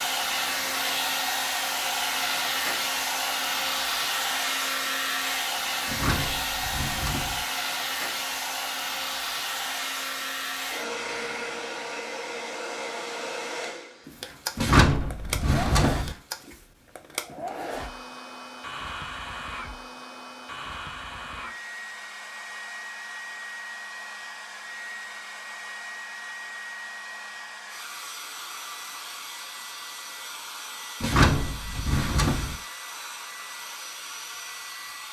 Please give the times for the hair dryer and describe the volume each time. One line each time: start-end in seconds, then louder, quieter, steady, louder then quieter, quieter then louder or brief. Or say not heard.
0.0-35.0 quieter.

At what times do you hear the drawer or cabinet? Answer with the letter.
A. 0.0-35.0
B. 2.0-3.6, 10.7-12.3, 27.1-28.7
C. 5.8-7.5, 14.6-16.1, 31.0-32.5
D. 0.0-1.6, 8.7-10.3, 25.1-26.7
C.